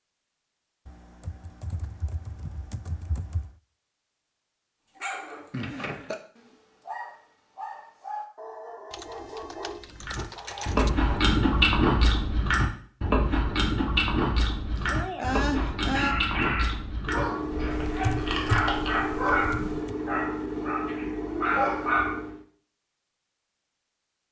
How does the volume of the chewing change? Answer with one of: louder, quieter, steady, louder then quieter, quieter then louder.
quieter.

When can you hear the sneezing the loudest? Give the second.
15 s.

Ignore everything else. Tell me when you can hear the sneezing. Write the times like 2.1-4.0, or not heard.
5.5-6.2, 14.7-16.1.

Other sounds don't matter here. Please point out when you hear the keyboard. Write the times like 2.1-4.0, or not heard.
0.8-3.5, 8.9-10.9, 17.7-19.9.